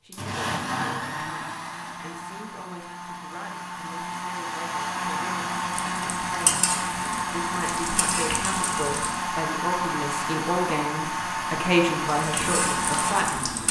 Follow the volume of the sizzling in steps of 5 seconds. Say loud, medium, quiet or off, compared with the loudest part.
off, loud, loud.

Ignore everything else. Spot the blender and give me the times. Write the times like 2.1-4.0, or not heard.
0.1-13.6.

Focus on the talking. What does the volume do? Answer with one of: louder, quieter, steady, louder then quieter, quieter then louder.
louder.